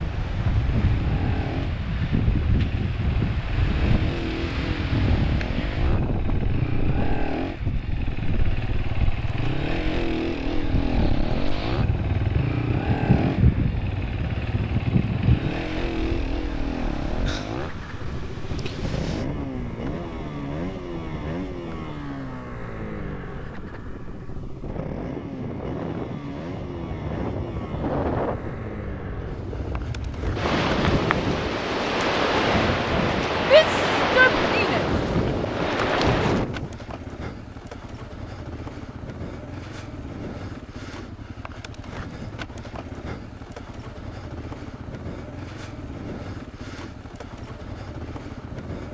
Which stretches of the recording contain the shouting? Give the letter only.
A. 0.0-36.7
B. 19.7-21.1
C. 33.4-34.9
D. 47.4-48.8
C.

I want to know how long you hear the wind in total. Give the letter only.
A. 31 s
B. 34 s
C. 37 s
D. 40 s
C.